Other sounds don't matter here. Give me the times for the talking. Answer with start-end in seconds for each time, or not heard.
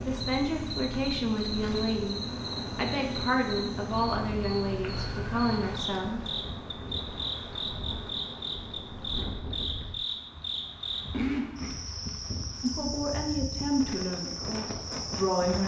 0.1-6.2, 12.6-15.6.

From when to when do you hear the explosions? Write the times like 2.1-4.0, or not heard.
not heard.